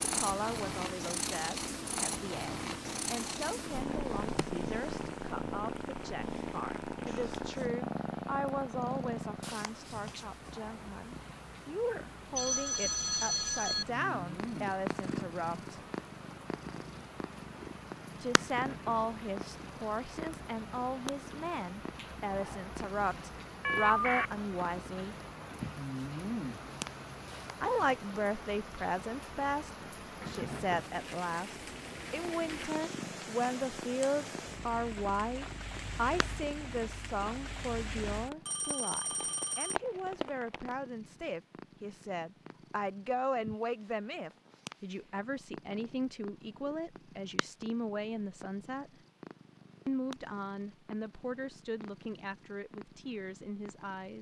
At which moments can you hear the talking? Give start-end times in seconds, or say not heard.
0.0-15.8, 18.2-25.1, 27.6-48.9, 49.9-54.1.